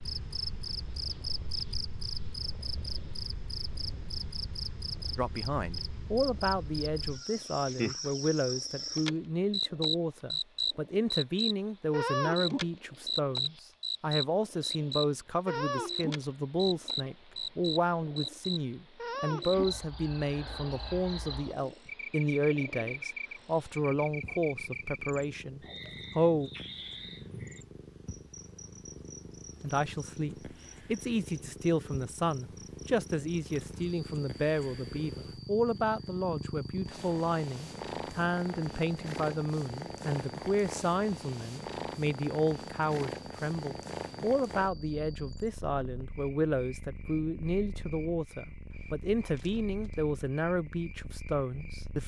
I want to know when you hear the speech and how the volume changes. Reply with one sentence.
The speech can be heard from 5.2 to 26.5 s, at a steady volume; and from 29.6 to 52.0 s, at a steady volume.